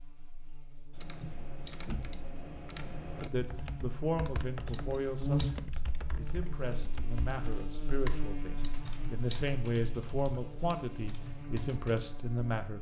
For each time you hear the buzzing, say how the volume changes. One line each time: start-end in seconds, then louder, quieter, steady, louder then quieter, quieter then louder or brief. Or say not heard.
0.0-12.7 louder then quieter.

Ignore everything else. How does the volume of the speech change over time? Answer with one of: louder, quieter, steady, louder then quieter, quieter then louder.
quieter then louder.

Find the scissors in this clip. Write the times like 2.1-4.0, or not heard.
0.9-1.9, 4.7-5.5, 8.6-9.4.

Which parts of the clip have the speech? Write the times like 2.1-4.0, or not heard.
3.2-12.7.